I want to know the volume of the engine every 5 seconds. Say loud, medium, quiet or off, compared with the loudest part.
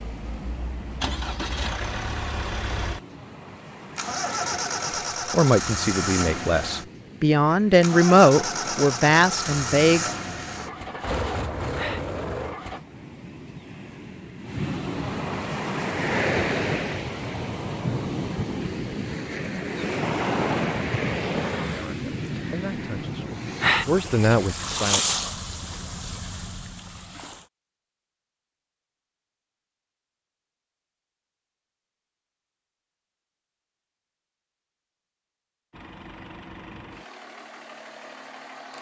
loud, loud, loud, off, off, off, off, quiet.